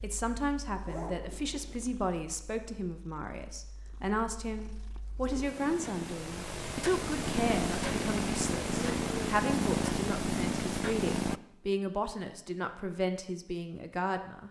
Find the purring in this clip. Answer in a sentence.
You can hear the purring from 0.0 to 11.4 s.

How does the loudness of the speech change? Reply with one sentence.
The volume of the speech stays about the same.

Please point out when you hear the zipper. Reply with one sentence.
You can hear the zipper from 0.8 to 1.9 s.